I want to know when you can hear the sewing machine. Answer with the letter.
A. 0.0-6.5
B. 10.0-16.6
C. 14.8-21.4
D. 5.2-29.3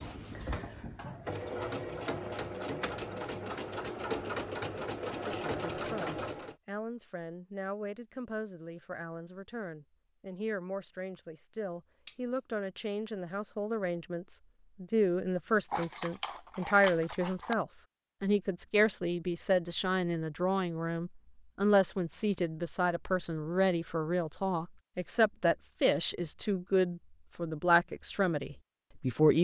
A.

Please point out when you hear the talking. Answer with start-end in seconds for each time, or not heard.
5.2-29.3.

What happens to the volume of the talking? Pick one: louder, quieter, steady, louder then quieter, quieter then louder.
louder.